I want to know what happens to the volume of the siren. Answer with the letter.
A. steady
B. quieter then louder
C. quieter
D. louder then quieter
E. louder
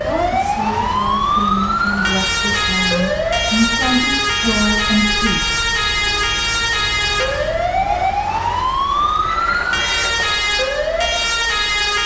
A.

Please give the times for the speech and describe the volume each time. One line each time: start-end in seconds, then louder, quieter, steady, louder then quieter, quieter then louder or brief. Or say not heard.
0.0-5.4 louder.